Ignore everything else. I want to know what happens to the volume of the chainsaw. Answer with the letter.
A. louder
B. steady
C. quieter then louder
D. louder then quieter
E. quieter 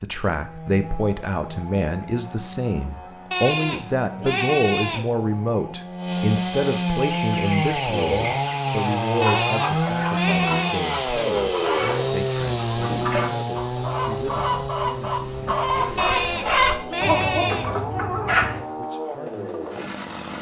D.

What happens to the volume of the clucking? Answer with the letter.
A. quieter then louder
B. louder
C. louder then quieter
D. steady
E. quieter
B.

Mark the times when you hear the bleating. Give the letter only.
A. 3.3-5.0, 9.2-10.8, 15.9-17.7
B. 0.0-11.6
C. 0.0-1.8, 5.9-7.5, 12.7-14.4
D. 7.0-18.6
A.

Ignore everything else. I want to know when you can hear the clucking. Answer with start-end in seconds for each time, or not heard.
7.0-18.6.